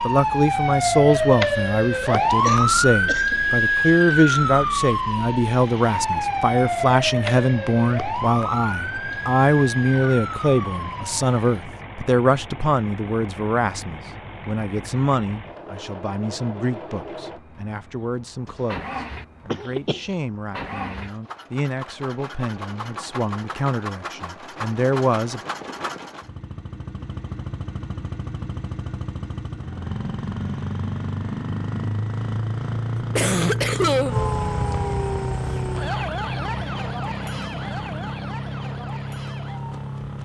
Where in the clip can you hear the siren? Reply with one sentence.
The siren can be heard from 0.0 to 11.7 s and from 34.0 to 40.2 s.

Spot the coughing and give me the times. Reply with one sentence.
You can hear the coughing from 2.4 to 3.4 s, from 19.5 to 20.0 s and from 33.1 to 34.1 s.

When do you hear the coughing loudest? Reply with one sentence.
The loudest moment of the coughing is at 34 seconds.